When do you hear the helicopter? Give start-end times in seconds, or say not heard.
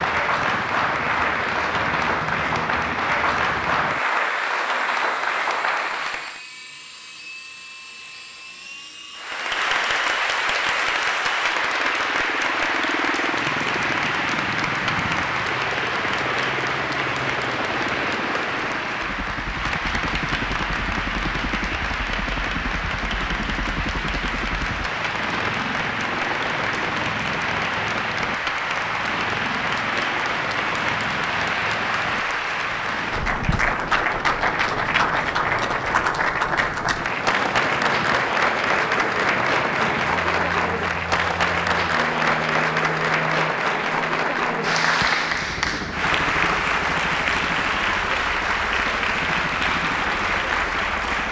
0.0-51.2.